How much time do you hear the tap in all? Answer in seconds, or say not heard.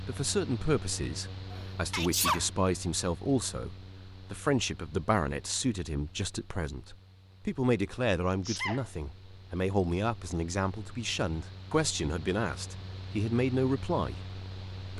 not heard.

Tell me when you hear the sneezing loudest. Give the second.
2 s.